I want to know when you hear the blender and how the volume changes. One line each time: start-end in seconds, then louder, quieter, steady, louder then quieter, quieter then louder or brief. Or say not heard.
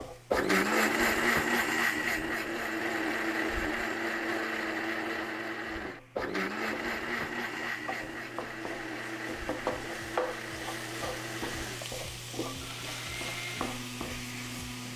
0.3-14.9 quieter.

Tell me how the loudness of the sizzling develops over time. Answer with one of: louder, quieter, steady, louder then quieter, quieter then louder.
quieter then louder.